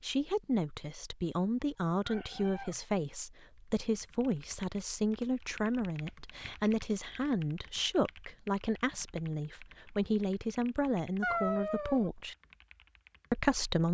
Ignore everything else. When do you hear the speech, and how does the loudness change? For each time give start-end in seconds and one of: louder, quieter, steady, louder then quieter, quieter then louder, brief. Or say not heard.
0.0-12.3 steady
13.3-13.8 brief.